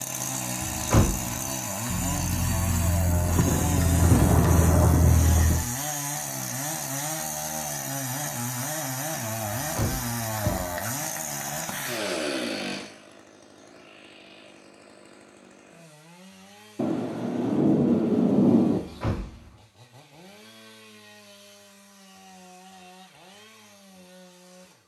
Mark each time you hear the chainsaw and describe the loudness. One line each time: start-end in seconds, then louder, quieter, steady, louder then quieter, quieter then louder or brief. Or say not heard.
0.0-24.8 quieter.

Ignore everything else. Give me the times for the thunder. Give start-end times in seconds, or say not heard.
1.9-5.7, 16.8-18.8.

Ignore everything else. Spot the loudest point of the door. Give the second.
1 s.